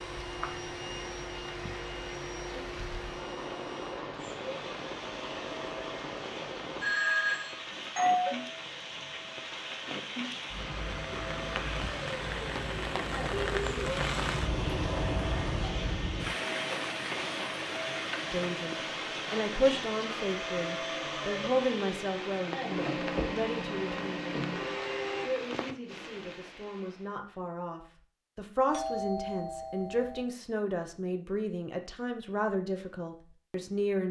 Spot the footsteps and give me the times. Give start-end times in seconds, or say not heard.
not heard.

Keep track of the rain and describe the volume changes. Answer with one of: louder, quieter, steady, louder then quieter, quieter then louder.
louder then quieter.